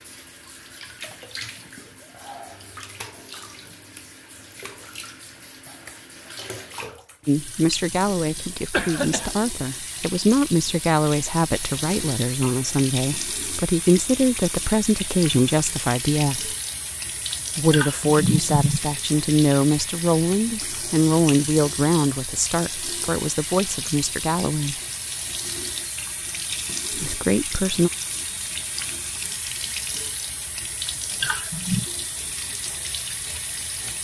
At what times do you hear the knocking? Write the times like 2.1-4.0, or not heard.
not heard.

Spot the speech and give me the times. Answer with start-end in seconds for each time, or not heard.
7.2-16.6, 17.6-24.8, 26.9-27.9.